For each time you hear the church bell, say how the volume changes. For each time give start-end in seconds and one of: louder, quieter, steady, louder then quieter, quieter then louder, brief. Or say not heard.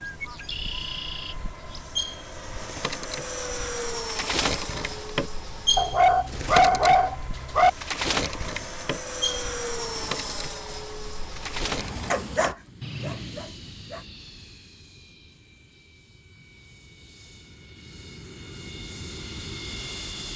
not heard.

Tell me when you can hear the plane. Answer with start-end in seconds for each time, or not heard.
0.0-20.3.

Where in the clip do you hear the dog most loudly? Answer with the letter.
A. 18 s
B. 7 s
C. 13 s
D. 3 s
B.